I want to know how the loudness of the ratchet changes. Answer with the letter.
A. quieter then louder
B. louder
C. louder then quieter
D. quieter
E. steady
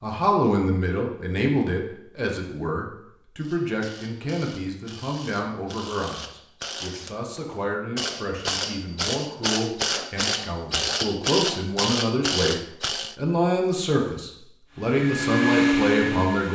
B.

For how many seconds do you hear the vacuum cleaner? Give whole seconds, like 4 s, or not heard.
2 s.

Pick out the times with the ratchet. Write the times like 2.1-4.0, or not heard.
3.4-13.2.